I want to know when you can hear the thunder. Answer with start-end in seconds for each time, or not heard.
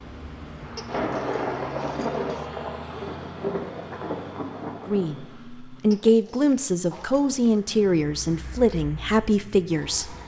0.8-5.3.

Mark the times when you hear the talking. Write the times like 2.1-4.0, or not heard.
4.8-10.2.